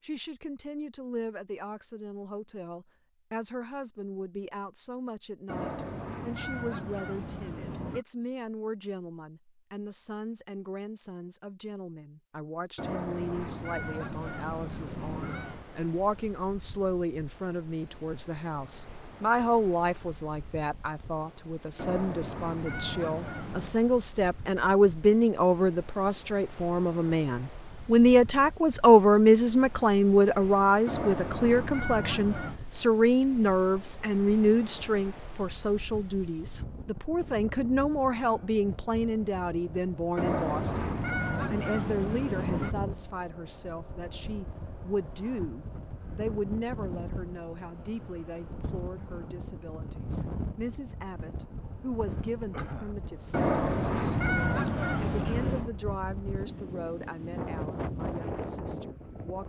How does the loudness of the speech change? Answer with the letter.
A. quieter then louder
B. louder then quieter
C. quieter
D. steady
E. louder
B.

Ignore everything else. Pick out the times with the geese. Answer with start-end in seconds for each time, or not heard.
5.5-8.1, 12.8-15.7, 21.8-23.8, 30.9-32.6, 40.1-42.8, 53.3-55.7.